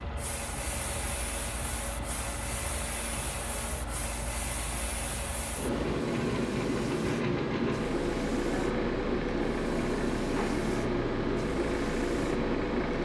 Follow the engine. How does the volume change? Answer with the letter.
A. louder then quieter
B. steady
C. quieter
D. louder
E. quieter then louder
B.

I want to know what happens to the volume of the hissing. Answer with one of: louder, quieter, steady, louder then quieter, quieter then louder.
louder.